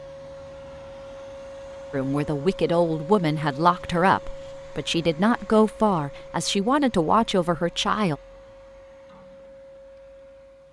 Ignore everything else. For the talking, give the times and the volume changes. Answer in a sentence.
You can hear the talking from 1.9 to 8.2 s, at a steady volume.